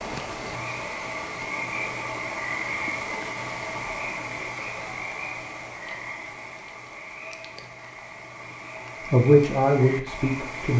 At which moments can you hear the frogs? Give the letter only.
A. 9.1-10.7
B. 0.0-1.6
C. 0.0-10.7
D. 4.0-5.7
C.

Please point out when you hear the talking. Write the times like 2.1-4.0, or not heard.
9.1-10.7.